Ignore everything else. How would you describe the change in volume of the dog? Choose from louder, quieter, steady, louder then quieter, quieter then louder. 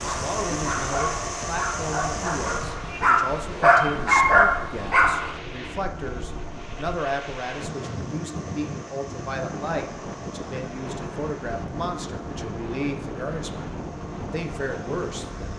louder.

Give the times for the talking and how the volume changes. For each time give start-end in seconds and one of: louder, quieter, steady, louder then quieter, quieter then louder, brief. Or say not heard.
0.1-15.5 steady.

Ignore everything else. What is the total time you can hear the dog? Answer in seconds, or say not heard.
5 s.